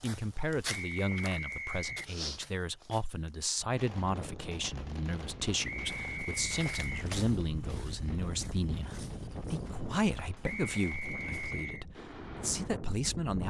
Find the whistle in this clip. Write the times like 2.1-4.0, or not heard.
0.7-2.1, 5.6-7.1, 10.4-11.8.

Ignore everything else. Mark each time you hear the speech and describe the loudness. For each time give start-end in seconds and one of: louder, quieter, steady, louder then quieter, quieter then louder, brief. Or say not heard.
0.0-13.4 steady.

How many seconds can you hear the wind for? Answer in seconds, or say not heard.
10 s.